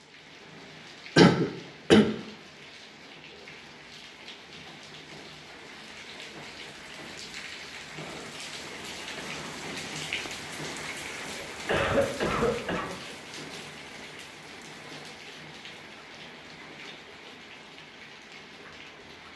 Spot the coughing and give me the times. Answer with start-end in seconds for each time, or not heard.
1.1-2.0, 11.1-12.9.